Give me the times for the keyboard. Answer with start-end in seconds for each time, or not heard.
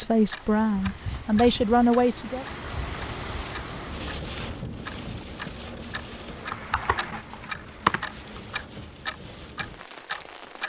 6.5-8.6.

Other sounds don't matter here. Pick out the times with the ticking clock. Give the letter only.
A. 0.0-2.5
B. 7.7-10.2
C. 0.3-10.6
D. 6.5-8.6
C.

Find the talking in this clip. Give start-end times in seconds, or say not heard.
0.0-2.5.